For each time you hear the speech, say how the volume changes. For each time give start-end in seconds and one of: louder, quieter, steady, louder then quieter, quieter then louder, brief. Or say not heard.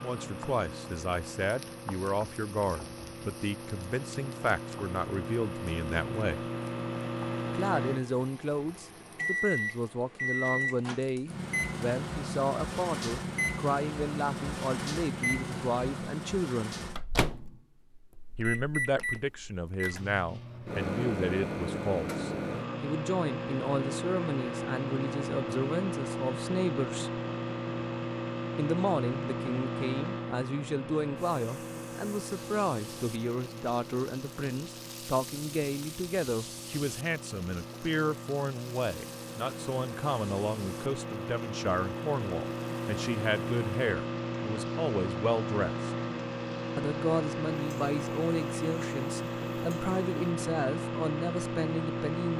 0.0-6.5 steady
7.5-16.8 steady
18.4-27.2 steady
28.6-45.9 steady
46.8-52.3 steady.